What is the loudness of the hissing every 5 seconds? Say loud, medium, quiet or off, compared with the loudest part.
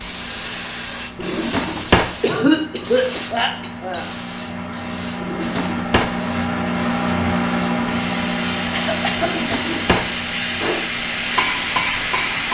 medium, medium, loud.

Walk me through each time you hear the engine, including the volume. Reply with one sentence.
You can hear the engine from 0.0 to 12.5 s, getting louder then quieter.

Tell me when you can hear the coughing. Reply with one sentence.
The coughing can be heard from 2.2 to 4.0 s and from 8.7 to 9.8 s.